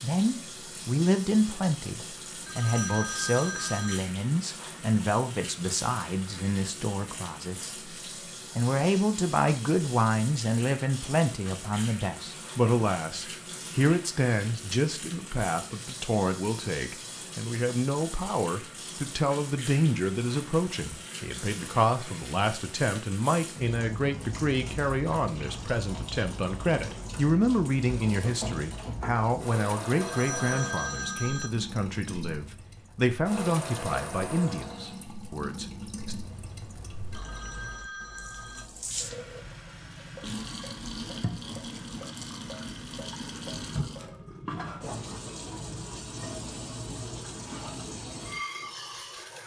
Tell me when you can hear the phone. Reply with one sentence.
You can hear the phone from 2.5 to 4.0 s, from 29.9 to 31.5 s and from 37.1 to 38.6 s.